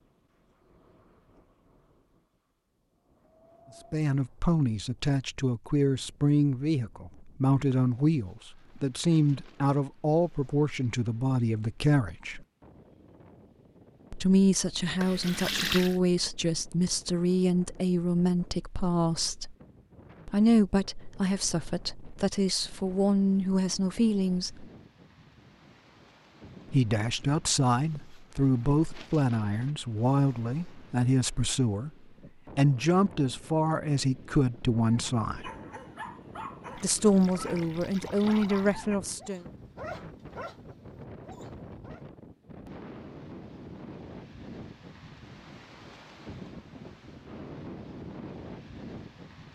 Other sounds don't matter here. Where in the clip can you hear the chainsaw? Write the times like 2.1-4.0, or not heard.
not heard.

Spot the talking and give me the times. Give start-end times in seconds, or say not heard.
3.9-12.4, 14.1-19.6, 20.2-24.6, 26.7-31.9, 32.5-35.5, 36.8-39.5.